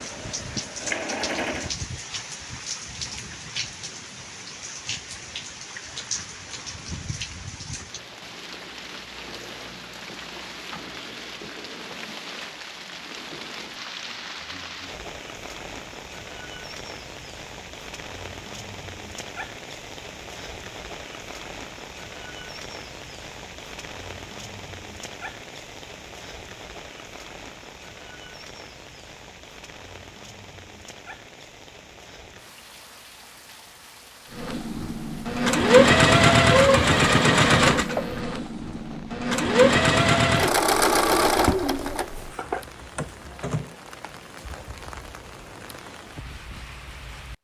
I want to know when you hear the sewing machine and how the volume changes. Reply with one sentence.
The sewing machine can be heard briefly from 0.0 to 1.8 s; and from 34.4 to 43.7 s, getting quieter.